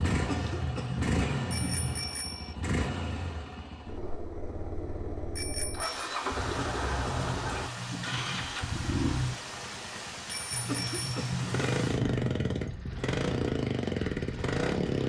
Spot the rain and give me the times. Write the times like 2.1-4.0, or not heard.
5.8-15.0.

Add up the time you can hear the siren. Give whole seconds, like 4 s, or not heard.
not heard.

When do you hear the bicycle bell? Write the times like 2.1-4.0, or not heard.
1.5-2.5, 5.3-6.0, 10.3-11.2.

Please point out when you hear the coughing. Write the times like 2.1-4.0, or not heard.
0.1-2.0, 6.4-8.4, 10.5-12.6.